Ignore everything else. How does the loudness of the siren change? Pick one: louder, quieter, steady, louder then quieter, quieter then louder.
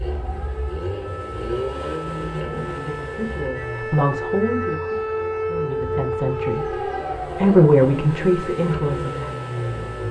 louder then quieter.